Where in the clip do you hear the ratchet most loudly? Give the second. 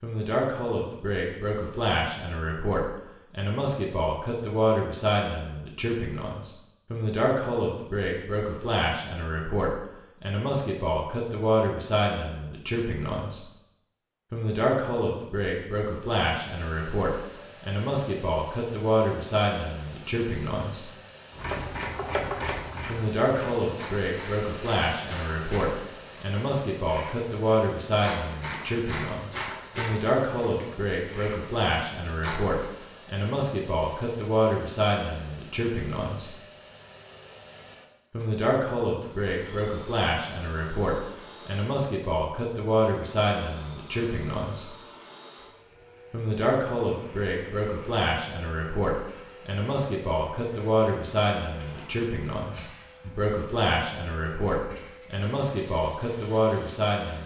22 s.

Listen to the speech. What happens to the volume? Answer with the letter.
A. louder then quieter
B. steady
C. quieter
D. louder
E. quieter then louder
B.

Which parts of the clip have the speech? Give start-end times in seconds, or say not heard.
0.0-13.4, 14.3-20.9, 22.9-36.3, 38.1-44.7, 46.1-57.2.